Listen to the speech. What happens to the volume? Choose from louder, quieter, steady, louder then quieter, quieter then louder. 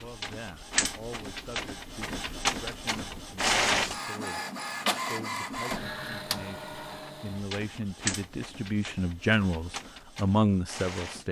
louder.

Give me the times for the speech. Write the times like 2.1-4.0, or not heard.
0.0-11.2.